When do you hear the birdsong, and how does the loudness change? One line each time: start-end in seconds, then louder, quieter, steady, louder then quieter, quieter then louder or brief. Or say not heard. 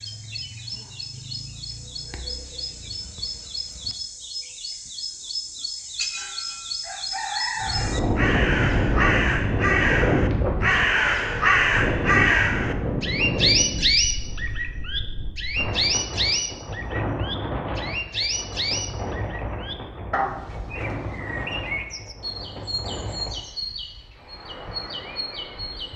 0.0-25.9 louder then quieter.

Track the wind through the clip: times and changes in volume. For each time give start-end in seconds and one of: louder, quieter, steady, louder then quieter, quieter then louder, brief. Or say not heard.
7.5-25.9 quieter.